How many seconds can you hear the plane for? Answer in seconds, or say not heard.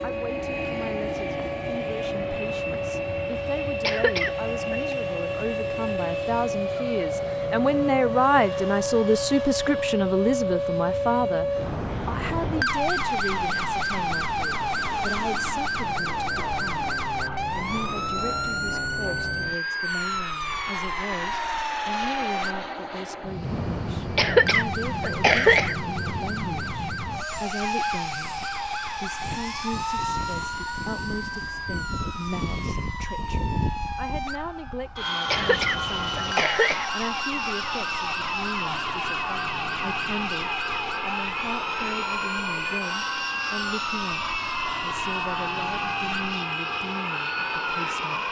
48 s.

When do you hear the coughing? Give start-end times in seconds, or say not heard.
3.8-5.0, 24.1-25.8, 35.3-36.9.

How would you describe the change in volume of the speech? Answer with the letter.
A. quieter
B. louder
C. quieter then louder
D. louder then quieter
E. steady
A.